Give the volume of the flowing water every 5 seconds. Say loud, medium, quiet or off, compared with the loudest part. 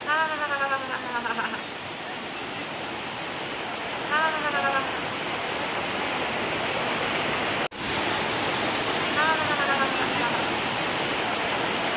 medium, loud, loud.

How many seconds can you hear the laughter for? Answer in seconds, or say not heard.
4 s.